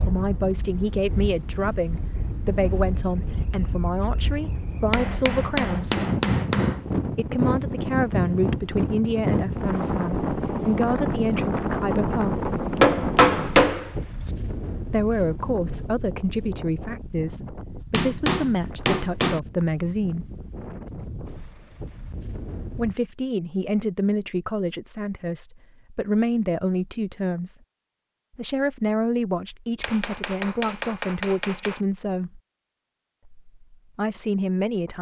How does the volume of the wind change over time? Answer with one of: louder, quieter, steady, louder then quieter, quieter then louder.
louder then quieter.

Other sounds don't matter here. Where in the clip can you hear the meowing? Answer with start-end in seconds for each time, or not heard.
not heard.